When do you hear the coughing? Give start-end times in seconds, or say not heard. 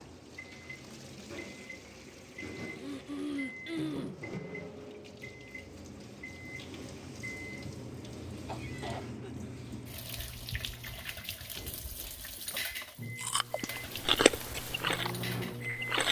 2.5-4.2, 8.4-9.3.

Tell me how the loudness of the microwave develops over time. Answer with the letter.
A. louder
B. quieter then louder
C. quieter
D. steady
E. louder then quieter
A.